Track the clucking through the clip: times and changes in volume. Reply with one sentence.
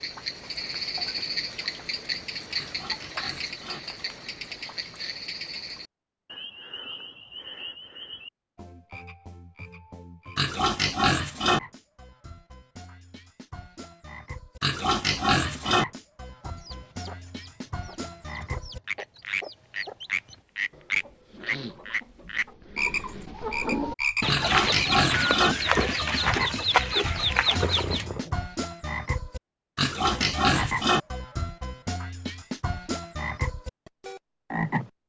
You can hear the clucking from 16.2 to 28.1 s, getting louder.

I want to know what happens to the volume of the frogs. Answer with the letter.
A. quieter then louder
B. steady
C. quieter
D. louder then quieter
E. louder
A.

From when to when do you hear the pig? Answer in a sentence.
The pig can be heard from 2.5 to 3.8 s, from 10.3 to 11.6 s, from 14.6 to 15.8 s, from 24.2 to 25.6 s and from 29.8 to 31.0 s.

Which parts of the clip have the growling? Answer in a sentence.
The growling can be heard from 27.6 to 28.4 s.